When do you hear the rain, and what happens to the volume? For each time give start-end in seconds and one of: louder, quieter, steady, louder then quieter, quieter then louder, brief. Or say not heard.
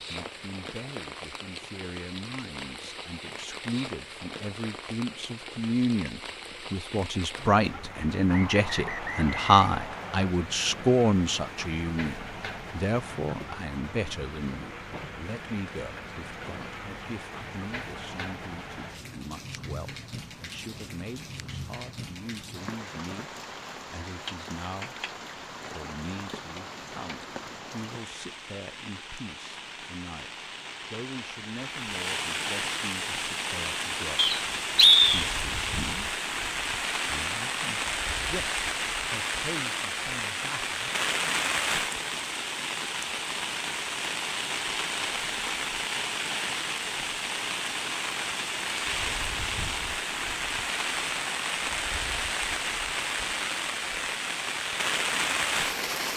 0.0-56.1 louder.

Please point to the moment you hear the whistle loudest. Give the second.
35 s.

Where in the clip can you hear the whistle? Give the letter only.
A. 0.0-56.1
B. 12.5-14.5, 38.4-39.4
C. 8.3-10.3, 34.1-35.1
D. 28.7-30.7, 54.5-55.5
C.